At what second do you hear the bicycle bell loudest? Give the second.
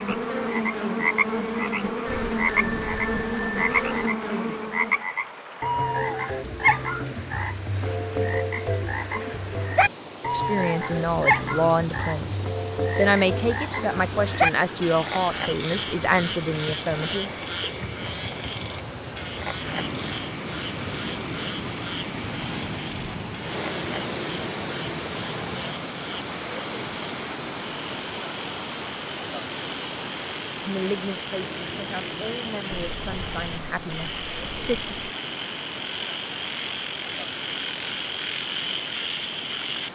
33 s.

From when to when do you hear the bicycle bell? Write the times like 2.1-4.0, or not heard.
2.0-4.1, 32.8-35.1.